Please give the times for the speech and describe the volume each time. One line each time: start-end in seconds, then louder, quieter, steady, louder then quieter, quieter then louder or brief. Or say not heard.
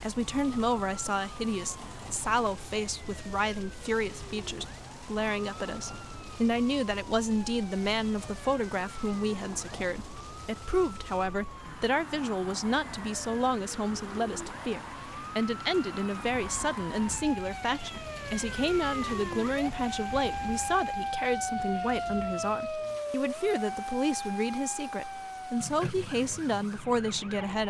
0.0-27.6 steady.